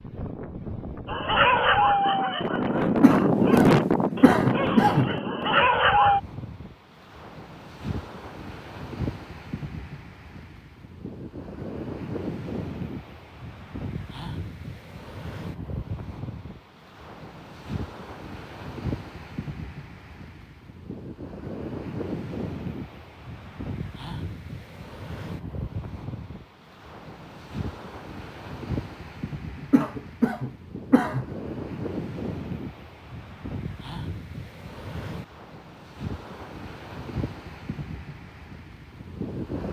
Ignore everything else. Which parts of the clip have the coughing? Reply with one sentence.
The coughing can be heard from 2.9 to 5.1 s and from 29.6 to 31.2 s.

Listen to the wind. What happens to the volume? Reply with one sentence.
The volume of the wind goes down.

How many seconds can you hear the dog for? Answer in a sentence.
You can hear the dog for 5 seconds altogether.